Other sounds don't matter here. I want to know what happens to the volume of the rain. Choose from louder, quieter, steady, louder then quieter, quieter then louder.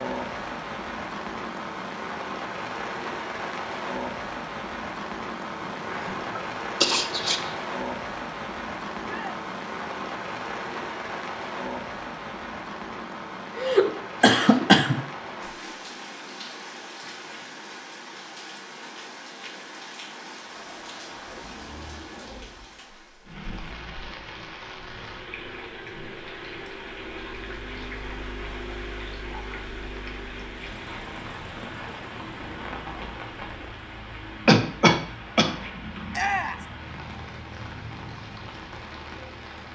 quieter.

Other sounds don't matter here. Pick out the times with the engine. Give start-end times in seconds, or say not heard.
20.4-39.7.